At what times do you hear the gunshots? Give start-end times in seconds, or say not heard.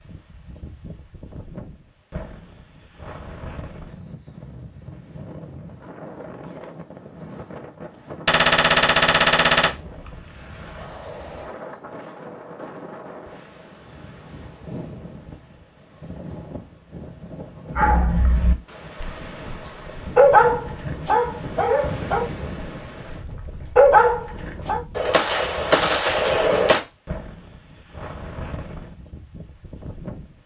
8.2-9.8, 24.9-26.8.